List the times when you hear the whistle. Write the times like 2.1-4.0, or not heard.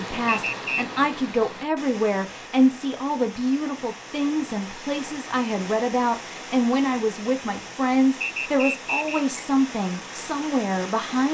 0.2-1.0, 8.2-9.2.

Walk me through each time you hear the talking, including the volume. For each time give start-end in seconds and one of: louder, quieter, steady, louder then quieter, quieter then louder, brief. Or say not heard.
0.0-11.3 steady.